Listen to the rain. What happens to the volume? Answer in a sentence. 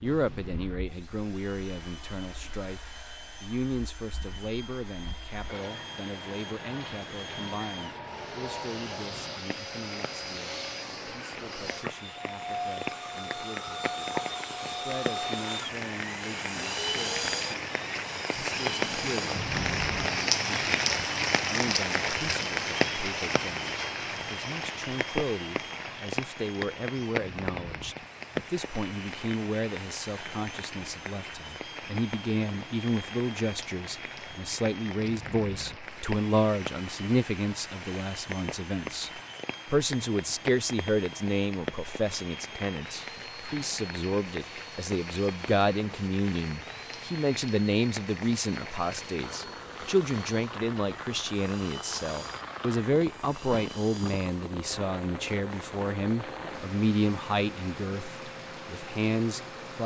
The loudness of the rain goes up, then down.